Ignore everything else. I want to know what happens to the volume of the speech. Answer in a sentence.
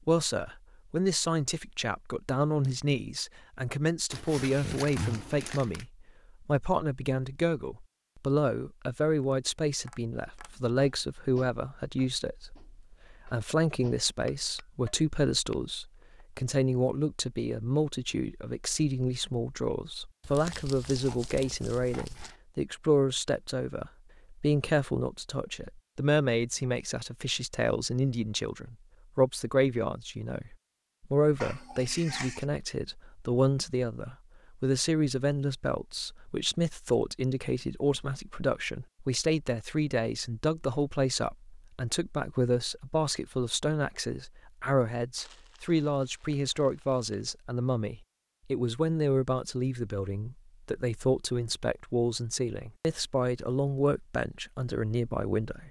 The loudness of the speech stays about the same.